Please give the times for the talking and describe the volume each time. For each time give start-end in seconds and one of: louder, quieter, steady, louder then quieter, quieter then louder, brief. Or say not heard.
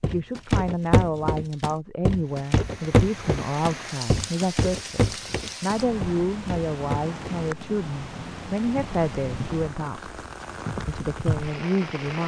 0.0-10.1 steady
10.8-12.2 brief.